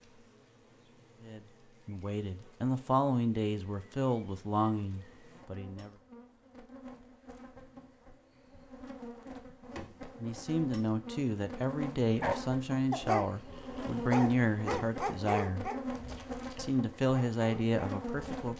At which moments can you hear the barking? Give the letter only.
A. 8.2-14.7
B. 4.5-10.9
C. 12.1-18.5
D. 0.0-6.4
C.